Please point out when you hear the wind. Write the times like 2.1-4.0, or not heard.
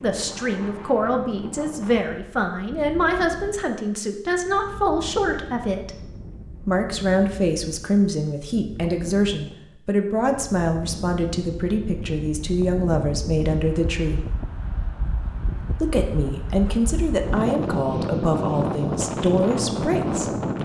0.0-20.6.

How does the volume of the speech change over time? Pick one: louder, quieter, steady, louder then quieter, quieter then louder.
steady.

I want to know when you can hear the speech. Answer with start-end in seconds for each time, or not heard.
0.0-6.0, 6.7-14.2, 15.8-20.6.